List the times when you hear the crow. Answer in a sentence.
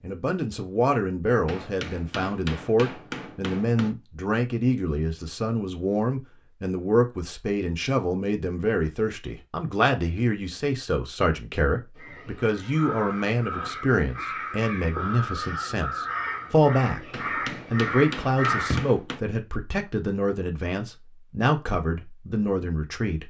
You can hear the crow from 11.9 to 18.9 s.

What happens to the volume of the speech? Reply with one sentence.
The volume of the speech stays about the same.